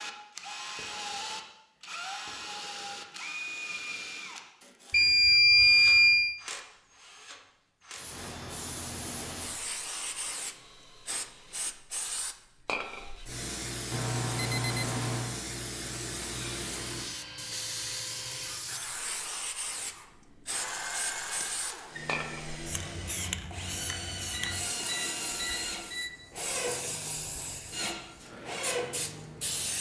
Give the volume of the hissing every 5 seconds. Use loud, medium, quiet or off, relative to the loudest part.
off, loud, loud, loud, loud, loud.